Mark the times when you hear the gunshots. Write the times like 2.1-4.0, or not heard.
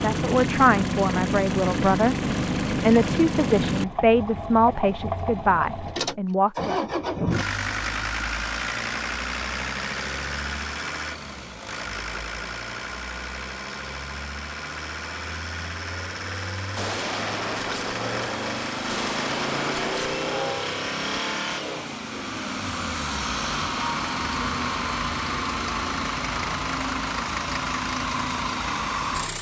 16.8-20.6.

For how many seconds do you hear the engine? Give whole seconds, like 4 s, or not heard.
29 s.